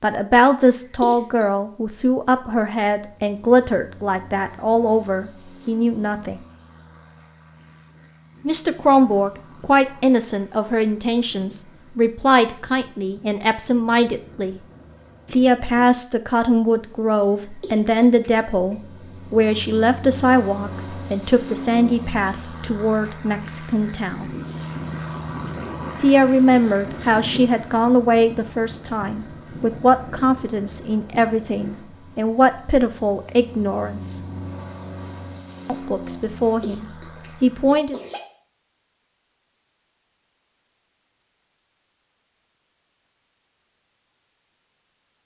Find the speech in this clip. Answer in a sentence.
The speech can be heard from 0.0 to 6.4 s, from 8.4 to 14.6 s, from 15.3 to 24.3 s, from 26.0 to 34.2 s and from 35.6 to 38.0 s.